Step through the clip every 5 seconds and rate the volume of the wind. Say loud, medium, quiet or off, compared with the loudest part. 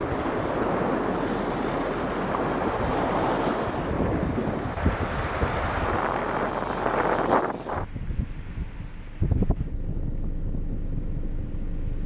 loud, loud, quiet.